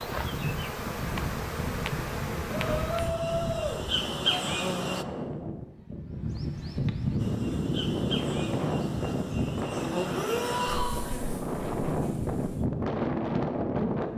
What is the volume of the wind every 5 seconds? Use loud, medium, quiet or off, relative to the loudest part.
medium, loud, loud.